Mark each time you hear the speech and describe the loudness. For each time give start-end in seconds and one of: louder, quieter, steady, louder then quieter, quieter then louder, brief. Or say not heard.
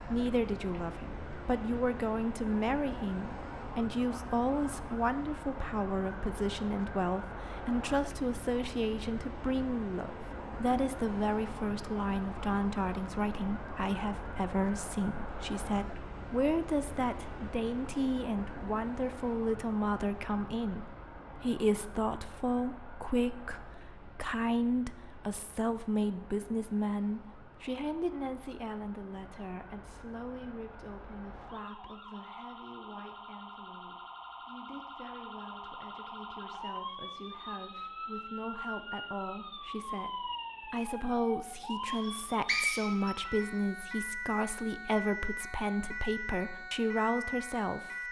0.0-48.0 quieter then louder.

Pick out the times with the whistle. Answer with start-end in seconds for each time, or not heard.
42.0-43.1.